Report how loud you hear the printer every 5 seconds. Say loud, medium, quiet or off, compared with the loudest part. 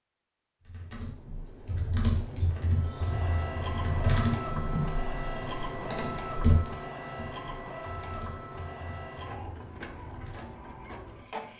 loud, loud, medium.